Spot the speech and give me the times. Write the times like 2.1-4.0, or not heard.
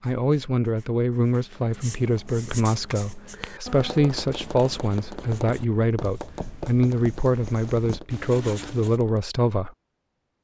0.0-9.7.